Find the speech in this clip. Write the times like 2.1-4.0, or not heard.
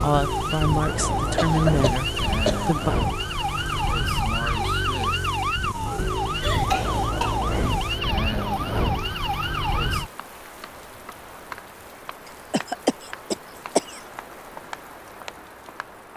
0.0-3.0.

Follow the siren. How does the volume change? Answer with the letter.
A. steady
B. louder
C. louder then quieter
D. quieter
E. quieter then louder
A.